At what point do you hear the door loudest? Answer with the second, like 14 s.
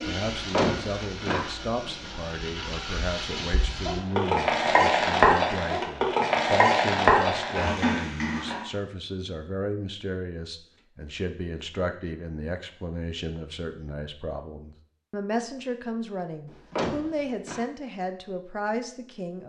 1 s.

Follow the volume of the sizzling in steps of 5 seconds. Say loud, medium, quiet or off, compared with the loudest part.
medium, loud, off, off.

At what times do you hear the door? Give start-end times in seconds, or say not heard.
0.5-1.4, 16.4-17.6.